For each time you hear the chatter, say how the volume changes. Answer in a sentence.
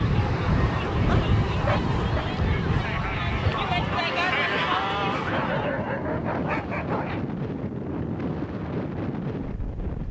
The chatter can be heard from 0.0 to 5.7 s, getting louder.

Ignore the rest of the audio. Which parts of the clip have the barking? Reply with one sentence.
You can hear the barking from 0.9 to 2.2 s and from 5.3 to 7.2 s.